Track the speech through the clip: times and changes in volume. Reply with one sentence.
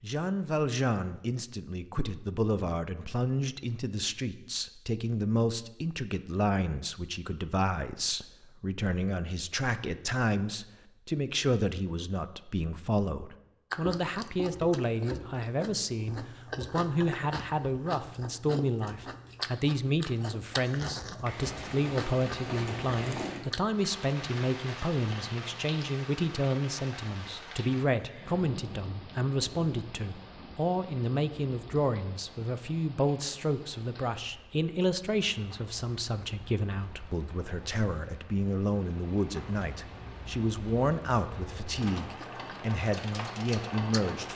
The speech can be heard from 0.0 to 44.3 s, at a steady volume.